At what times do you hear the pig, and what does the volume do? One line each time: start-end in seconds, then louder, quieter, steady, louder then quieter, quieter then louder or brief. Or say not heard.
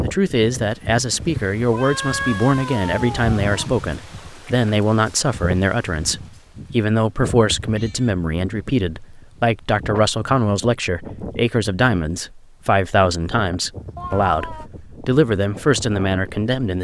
not heard.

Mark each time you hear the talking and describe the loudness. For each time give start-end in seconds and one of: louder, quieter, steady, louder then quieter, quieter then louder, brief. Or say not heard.
0.0-16.8 steady.